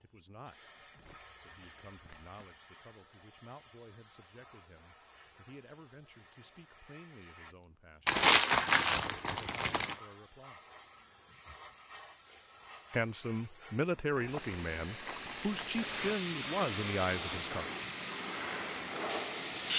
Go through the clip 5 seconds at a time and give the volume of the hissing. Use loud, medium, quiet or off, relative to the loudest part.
quiet, quiet, quiet, loud.